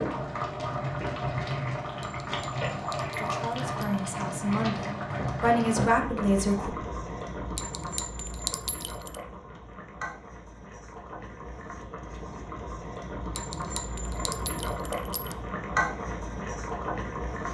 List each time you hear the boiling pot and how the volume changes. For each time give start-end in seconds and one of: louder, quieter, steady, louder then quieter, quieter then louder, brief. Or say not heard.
0.0-17.4 quieter then louder.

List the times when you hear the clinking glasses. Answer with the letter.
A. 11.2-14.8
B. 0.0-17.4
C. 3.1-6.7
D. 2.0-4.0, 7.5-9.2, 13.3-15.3
D.